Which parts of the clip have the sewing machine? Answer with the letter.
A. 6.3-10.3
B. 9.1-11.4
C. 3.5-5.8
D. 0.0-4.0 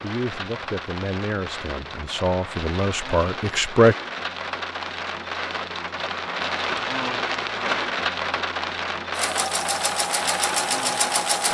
B.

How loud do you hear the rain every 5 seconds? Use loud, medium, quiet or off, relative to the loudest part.
medium, loud, loud.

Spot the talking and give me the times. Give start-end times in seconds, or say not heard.
0.0-4.0.